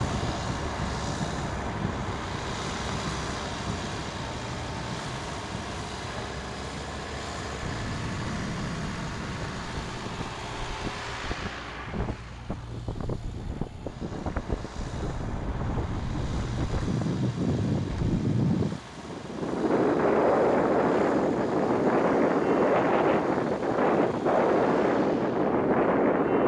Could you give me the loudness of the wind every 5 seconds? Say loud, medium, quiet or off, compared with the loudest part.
quiet, quiet, quiet, medium, loud, loud.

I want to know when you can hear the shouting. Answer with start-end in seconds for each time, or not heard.
not heard.